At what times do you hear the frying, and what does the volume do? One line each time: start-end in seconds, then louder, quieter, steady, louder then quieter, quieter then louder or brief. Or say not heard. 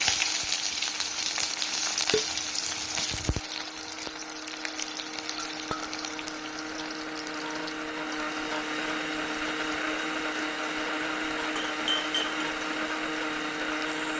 0.0-14.1 quieter.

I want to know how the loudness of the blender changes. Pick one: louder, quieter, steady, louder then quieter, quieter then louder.
louder.